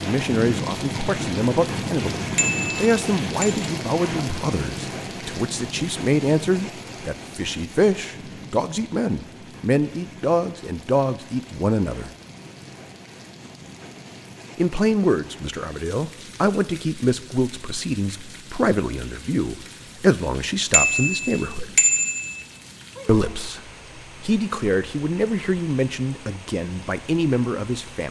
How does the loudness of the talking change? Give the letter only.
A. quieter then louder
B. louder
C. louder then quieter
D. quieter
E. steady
E.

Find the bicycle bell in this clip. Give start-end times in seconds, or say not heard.
2.4-3.5, 20.7-22.4.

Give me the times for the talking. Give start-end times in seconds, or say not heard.
0.0-12.1, 14.6-21.8, 23.1-28.0.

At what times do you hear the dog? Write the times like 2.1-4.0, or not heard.
not heard.